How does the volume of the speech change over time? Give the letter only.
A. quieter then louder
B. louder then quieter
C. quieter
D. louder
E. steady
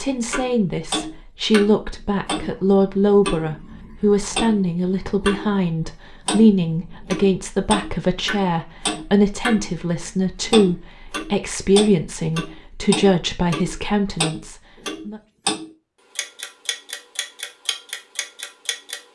E.